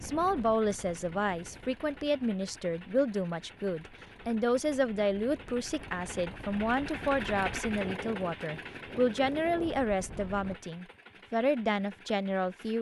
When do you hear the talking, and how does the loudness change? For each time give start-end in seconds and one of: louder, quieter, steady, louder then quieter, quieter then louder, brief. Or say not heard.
0.0-12.7 steady.